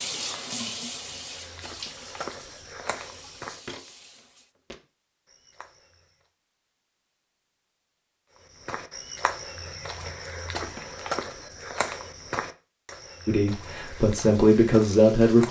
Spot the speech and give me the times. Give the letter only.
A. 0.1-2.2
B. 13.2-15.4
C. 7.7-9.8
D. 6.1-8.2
B.